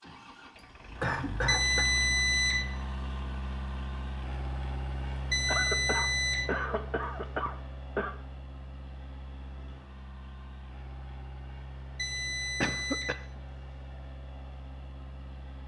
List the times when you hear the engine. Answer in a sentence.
You can hear the engine from 0.0 to 15.6 s.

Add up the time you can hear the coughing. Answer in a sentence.
You can hear the coughing for 4 seconds altogether.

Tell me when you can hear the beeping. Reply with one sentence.
You can hear the beeping from 1.4 to 2.6 s, from 5.3 to 6.5 s and from 11.9 to 13.2 s.